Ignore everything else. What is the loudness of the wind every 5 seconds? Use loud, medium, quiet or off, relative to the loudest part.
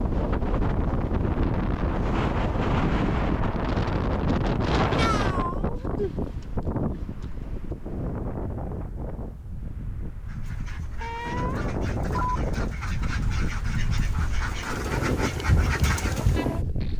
loud, medium, medium, loud.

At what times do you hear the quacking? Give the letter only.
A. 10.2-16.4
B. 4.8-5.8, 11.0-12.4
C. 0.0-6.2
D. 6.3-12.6
A.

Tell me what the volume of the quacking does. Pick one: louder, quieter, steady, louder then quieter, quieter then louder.
louder.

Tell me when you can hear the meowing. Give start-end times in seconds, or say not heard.
4.8-5.8, 11.0-12.4.